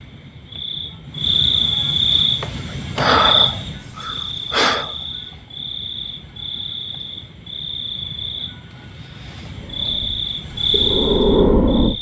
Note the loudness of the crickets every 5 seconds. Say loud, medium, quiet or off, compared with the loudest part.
loud, medium, loud.